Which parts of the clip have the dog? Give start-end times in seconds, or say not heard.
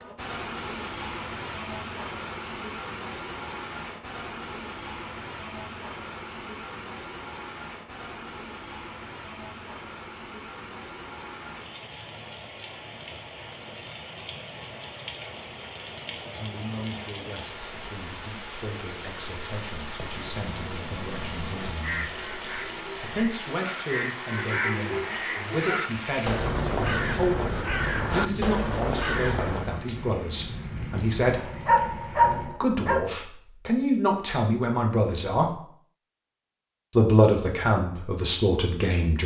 31.4-33.0.